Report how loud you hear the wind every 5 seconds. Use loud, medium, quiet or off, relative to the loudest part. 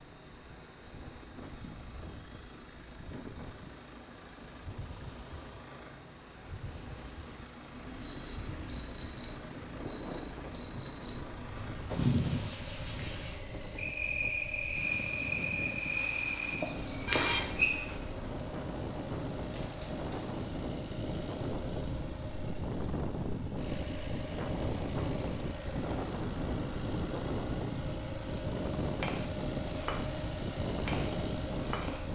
quiet, quiet, medium, medium, loud, loud, loud.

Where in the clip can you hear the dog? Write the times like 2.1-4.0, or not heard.
not heard.